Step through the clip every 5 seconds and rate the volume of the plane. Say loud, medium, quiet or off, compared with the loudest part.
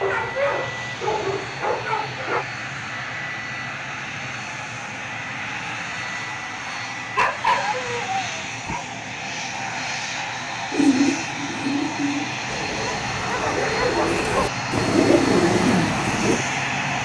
medium, medium, loud, loud.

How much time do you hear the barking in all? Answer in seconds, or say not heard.
6 s.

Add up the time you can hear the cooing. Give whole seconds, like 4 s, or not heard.
6 s.